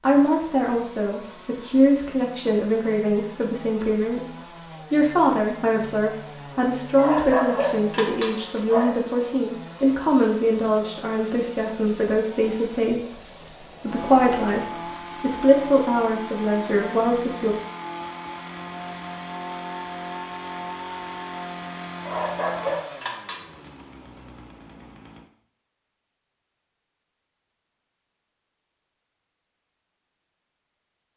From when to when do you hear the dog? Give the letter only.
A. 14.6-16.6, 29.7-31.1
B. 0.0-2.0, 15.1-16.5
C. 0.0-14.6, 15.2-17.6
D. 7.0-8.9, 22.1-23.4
D.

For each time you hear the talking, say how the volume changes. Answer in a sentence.
You can hear the talking from 0.0 to 14.6 s, at a steady volume; and briefly from 15.2 to 17.6 s.